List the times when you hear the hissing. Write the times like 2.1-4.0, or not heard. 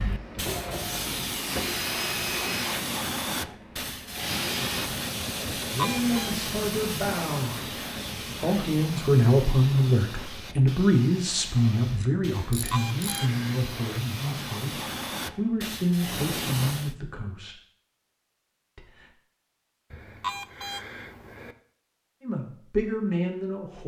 0.0-16.9.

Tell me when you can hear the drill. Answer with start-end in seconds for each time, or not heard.
0.0-4.9.